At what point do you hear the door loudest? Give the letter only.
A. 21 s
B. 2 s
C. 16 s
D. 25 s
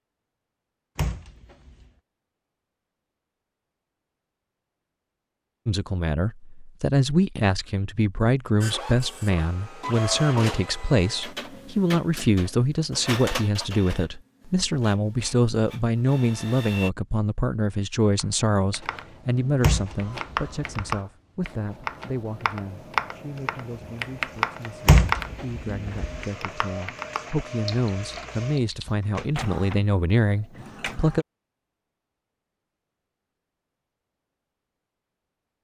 D.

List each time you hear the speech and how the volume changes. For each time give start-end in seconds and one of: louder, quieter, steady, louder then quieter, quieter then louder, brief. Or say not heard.
5.7-31.2 quieter then louder.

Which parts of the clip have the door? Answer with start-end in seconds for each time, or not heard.
0.9-1.9, 19.6-20.9, 24.9-26.2.